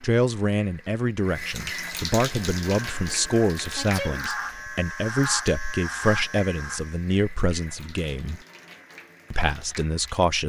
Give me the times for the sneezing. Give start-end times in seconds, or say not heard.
3.8-4.3.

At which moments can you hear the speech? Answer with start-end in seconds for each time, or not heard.
0.0-8.4, 9.3-10.4.